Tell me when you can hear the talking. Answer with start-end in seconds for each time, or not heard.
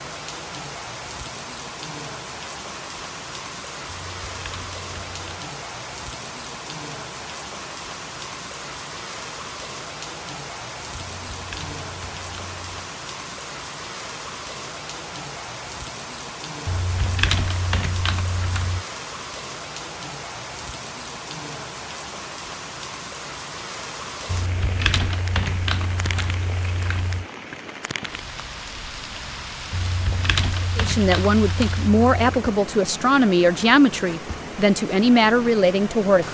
30.8-36.2.